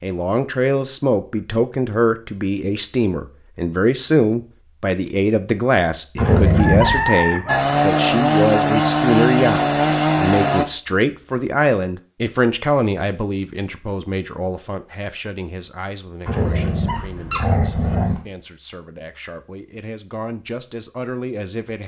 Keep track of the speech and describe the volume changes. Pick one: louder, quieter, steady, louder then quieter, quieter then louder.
quieter.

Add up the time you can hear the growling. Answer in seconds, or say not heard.
3 s.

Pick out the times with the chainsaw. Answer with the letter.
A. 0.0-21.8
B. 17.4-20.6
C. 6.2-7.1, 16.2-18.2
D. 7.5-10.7
D.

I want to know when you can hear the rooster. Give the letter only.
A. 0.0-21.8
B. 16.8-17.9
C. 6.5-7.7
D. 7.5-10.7
C.